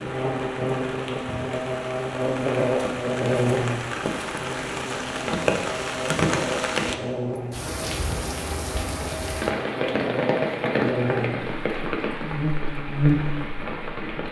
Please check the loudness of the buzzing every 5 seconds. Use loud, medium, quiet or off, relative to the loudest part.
loud, medium, loud.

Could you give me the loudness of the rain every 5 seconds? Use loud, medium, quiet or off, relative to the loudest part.
medium, loud, loud.